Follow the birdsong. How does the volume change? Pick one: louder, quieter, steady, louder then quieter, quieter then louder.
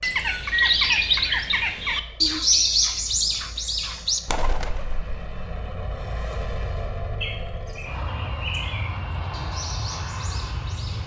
quieter.